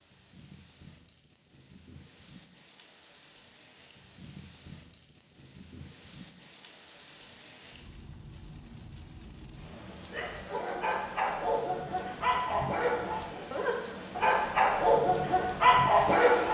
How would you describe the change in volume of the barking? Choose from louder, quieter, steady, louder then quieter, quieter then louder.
louder.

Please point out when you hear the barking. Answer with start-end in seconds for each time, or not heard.
10.1-16.4.